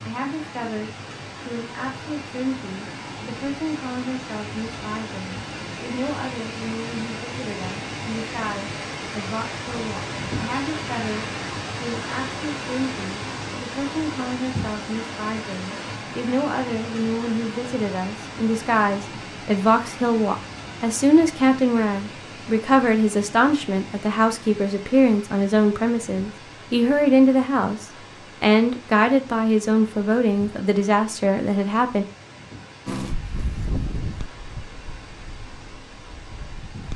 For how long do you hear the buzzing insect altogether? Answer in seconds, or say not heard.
4 s.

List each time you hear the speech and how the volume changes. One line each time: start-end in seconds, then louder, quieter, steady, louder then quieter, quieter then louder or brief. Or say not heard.
0.0-32.0 louder.